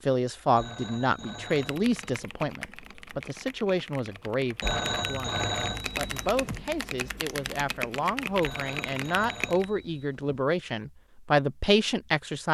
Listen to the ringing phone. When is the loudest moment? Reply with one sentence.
The volume of the ringing phone peaks at 5 seconds.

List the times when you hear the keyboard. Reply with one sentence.
You can hear the keyboard from 1.4 to 9.7 s.